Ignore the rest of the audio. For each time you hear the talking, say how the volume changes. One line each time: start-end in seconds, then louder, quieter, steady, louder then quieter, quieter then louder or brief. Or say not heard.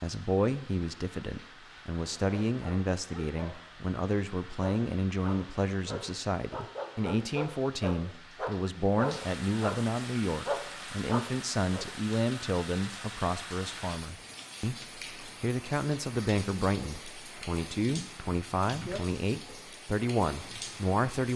0.0-21.3 steady.